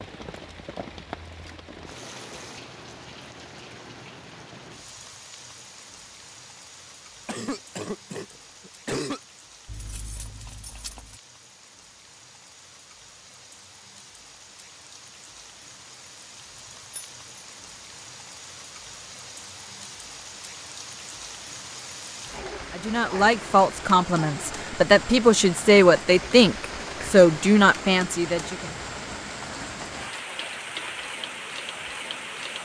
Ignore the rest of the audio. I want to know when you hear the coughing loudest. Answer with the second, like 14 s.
9 s.